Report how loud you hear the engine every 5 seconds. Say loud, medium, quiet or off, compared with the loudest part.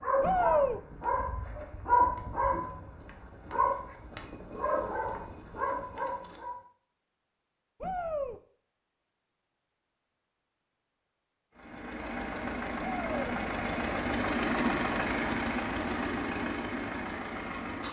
off, off, loud, loud.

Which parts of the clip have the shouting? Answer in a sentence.
The shouting can be heard from 0.2 to 0.8 s, from 7.8 to 8.4 s and from 12.9 to 13.3 s.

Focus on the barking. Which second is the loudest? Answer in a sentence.
The loudest moment of the barking is at 2 seconds.